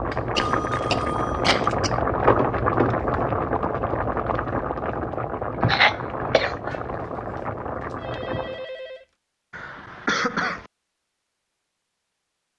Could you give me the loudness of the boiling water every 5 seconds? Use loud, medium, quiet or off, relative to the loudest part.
loud, medium, off.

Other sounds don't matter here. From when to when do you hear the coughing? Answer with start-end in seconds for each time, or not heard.
0.1-1.9, 5.6-6.8, 9.5-10.7.